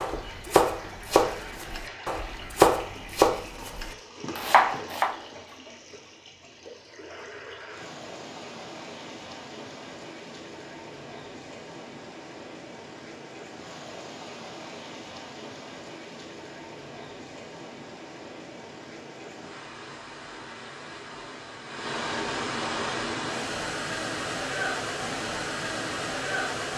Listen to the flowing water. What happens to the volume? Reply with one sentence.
The loudness of the flowing water goes up.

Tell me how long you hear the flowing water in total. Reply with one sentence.
The flowing water can be heard for 27 seconds in total.